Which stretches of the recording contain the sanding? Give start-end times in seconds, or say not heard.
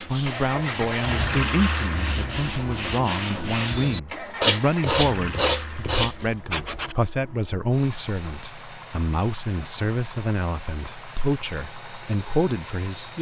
0.0-7.0.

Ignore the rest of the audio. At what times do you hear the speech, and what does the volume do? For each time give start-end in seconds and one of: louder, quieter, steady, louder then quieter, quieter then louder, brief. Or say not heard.
0.0-13.1 steady.